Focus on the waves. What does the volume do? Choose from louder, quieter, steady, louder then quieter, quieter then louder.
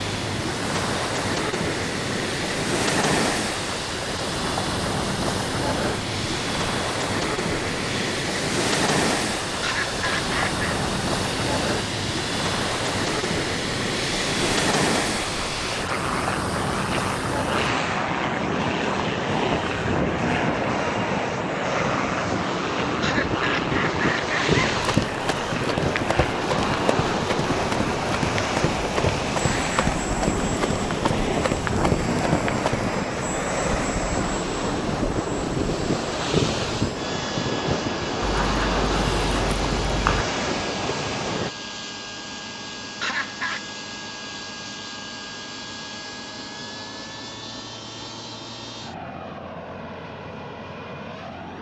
steady.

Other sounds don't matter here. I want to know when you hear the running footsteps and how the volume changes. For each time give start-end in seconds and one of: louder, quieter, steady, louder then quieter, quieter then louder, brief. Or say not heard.
24.8-32.9 steady.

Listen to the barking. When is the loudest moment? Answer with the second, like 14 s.
40 s.